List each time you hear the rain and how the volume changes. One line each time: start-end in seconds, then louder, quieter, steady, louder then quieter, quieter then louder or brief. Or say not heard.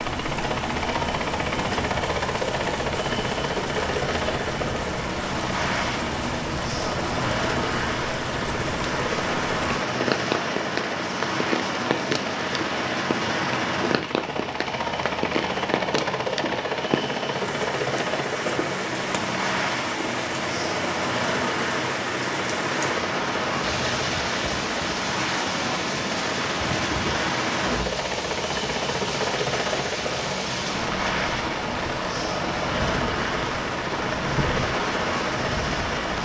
0.0-36.2 steady.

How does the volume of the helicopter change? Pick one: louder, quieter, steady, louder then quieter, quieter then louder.
steady.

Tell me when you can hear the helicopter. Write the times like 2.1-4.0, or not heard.
0.0-36.2.